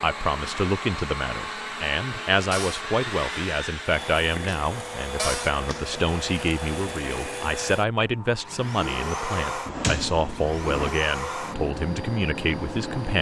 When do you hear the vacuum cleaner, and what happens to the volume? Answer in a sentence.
The vacuum cleaner can be heard from 0.0 to 13.1 s, at a steady volume.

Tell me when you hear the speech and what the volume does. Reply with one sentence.
You can hear the speech from 0.0 to 13.1 s, at a steady volume.